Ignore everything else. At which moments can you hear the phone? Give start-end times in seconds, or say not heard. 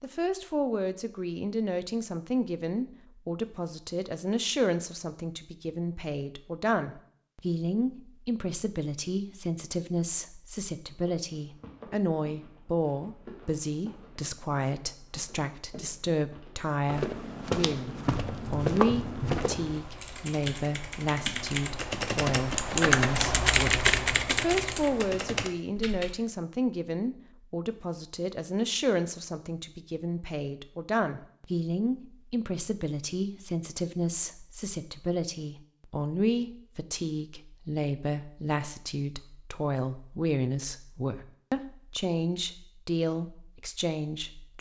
not heard.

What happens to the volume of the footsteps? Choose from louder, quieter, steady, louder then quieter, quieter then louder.
louder.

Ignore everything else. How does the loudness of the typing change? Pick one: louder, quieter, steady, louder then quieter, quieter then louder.
louder then quieter.